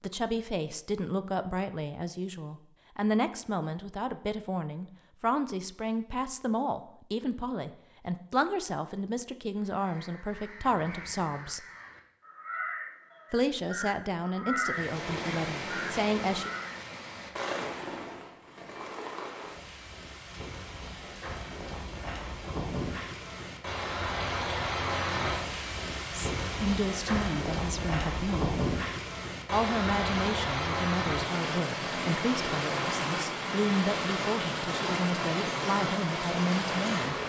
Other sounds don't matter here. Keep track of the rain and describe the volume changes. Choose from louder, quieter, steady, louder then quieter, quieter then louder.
louder.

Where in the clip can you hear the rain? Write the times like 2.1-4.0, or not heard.
14.7-37.2.